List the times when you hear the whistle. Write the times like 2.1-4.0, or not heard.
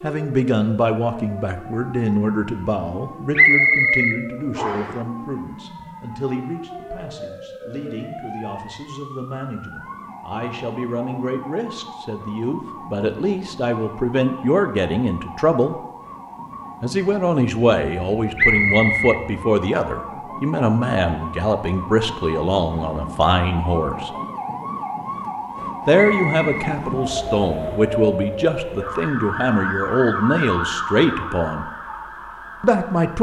3.4-4.9, 18.4-19.2, 26.2-26.7.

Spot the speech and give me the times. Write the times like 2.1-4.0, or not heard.
0.0-15.8, 16.8-24.1, 25.9-31.6, 32.6-33.1.